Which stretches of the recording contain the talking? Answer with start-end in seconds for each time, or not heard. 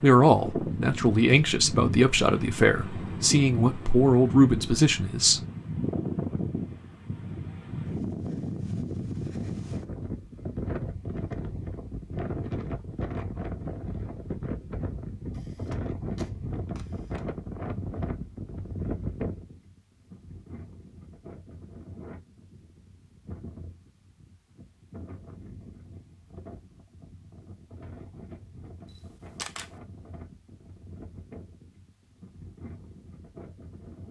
0.0-5.4.